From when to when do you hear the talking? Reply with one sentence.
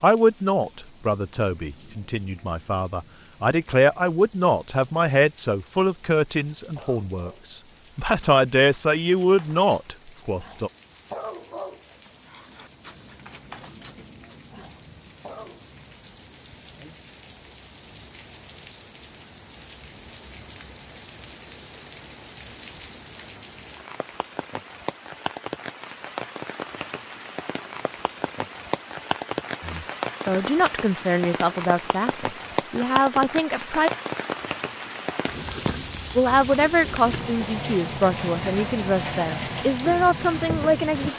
You can hear the talking from 0.0 to 10.7 s, from 29.6 to 33.9 s and from 36.1 to 41.1 s.